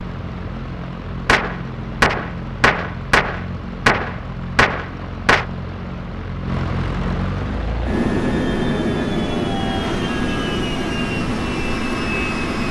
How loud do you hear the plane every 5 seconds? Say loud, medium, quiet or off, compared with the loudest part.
medium, loud, loud.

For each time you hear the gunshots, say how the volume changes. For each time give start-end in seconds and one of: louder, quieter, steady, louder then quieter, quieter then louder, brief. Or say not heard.
1.2-5.5 steady.